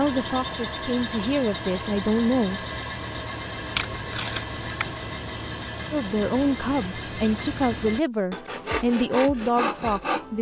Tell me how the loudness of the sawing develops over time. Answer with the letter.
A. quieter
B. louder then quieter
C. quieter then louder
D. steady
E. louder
D.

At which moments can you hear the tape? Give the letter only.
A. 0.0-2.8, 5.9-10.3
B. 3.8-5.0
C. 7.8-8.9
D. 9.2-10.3
B.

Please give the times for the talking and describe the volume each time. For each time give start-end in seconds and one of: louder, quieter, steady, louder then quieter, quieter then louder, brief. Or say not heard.
0.0-2.8 brief
5.9-10.3 steady.